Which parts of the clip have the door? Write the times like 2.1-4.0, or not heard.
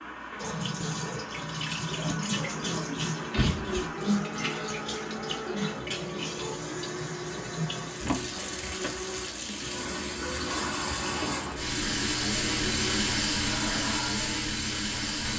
3.3-3.8, 8.0-9.0.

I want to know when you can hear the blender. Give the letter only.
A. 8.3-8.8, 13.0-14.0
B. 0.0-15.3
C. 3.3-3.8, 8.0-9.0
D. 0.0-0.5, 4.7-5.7
B.